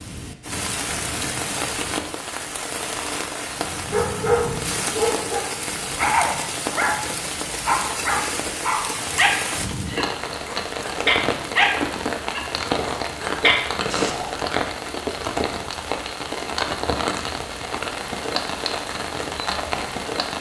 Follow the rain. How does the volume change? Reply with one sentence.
The loudness of the rain stays about the same.